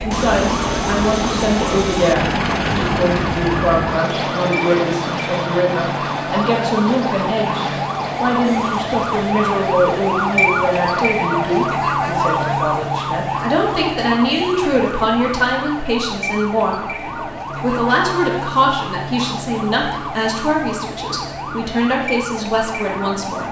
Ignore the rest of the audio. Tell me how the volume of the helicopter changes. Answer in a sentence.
The loudness of the helicopter goes down.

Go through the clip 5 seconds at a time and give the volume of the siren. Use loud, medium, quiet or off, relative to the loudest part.
medium, loud, loud, medium, medium.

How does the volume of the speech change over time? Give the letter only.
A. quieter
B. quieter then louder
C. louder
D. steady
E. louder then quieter
D.